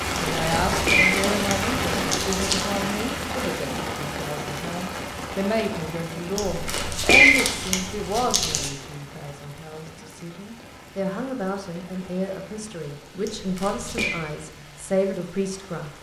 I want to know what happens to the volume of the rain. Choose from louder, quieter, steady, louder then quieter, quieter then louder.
quieter.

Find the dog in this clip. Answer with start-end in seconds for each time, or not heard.
not heard.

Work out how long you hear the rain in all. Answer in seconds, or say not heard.
16 s.